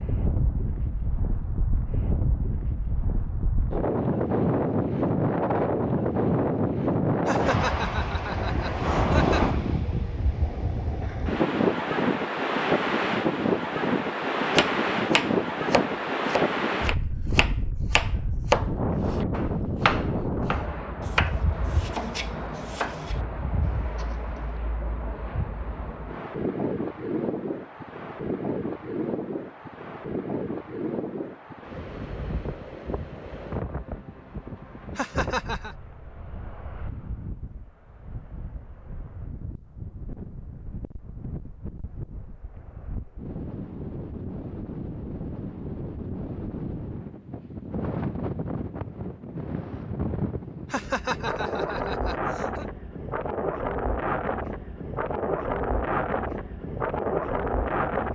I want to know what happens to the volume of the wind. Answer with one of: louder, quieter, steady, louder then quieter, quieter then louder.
quieter then louder.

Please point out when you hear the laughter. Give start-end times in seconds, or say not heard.
7.2-9.4, 35.0-35.8, 50.7-52.6.